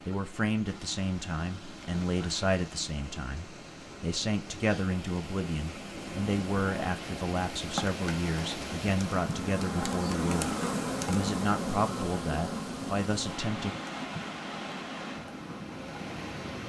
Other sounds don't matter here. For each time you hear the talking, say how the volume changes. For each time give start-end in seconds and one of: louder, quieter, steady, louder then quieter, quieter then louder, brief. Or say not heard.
0.0-13.8 steady.